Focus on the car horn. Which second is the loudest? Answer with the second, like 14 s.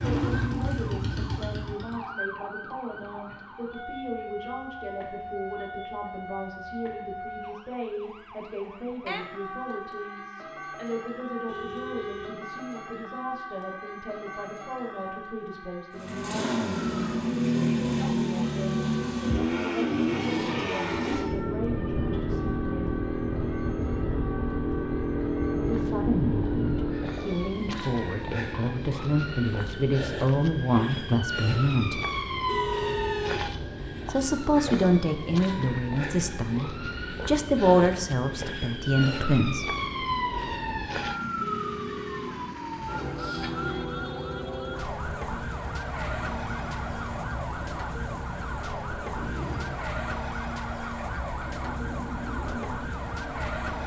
33 s.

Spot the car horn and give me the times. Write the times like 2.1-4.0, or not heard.
11.4-12.4, 32.5-33.5, 41.4-42.6.